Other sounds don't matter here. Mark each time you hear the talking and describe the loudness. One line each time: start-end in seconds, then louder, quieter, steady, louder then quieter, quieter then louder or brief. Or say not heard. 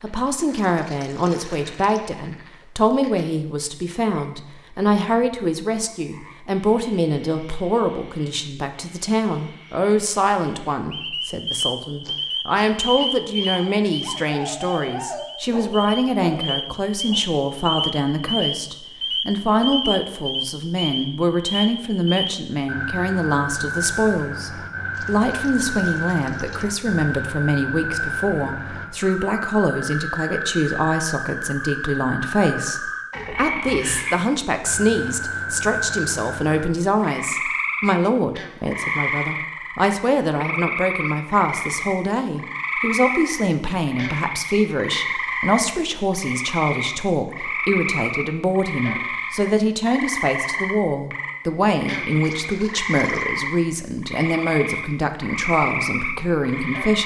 0.0-57.0 steady.